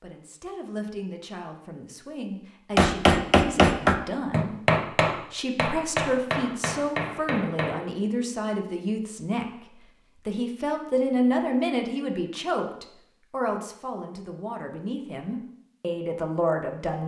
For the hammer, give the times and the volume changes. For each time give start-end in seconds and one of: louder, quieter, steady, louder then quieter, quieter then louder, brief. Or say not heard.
2.8-7.8 quieter.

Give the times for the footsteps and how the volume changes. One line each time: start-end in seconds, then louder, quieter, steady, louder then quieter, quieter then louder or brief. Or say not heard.
not heard.